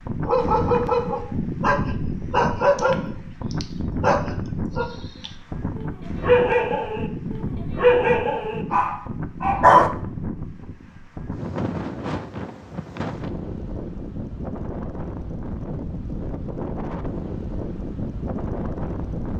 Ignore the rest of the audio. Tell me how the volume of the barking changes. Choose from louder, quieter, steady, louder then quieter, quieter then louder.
quieter then louder.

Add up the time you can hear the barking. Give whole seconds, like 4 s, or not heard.
10 s.